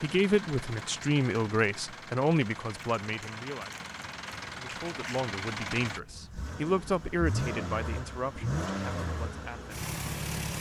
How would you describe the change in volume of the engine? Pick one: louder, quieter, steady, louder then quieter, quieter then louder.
louder.